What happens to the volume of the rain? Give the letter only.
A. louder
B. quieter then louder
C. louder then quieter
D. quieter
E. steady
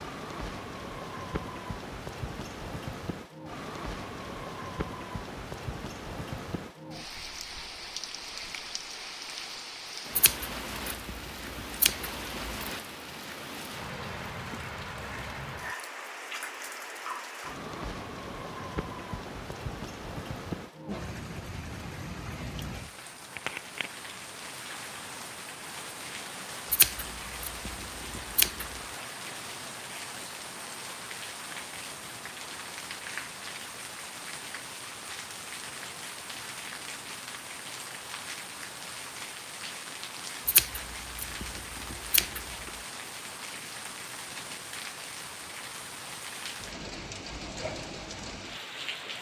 E.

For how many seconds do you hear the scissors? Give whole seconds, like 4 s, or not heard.
7 s.